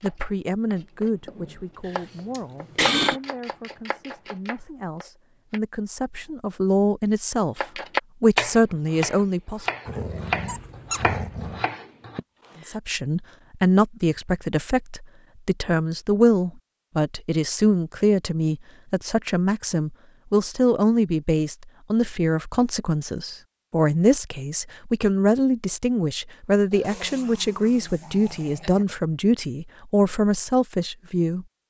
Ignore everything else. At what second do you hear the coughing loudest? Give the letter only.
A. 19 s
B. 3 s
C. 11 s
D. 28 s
B.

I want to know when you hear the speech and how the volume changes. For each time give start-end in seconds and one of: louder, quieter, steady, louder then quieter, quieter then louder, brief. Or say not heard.
0.0-9.7 quieter then louder
12.7-31.4 steady.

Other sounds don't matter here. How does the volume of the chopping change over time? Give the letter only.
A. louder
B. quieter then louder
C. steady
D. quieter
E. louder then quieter
E.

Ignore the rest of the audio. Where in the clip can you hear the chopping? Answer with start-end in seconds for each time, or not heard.
0.0-5.6, 7.5-12.2.